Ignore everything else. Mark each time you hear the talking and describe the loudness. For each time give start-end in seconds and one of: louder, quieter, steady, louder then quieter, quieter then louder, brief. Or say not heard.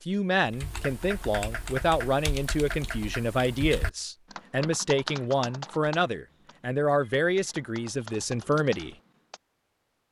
0.1-8.9 steady.